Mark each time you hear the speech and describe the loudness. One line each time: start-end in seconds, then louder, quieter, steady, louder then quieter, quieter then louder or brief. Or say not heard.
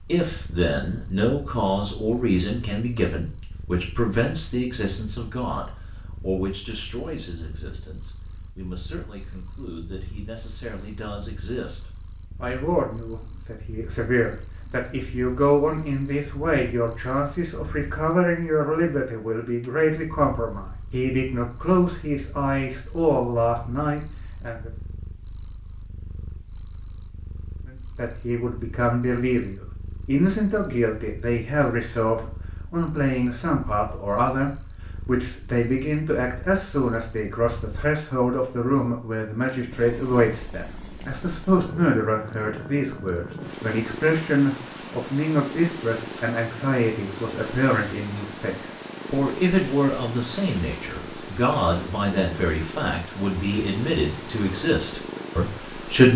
0.0-24.7 quieter then louder
27.6-56.1 steady.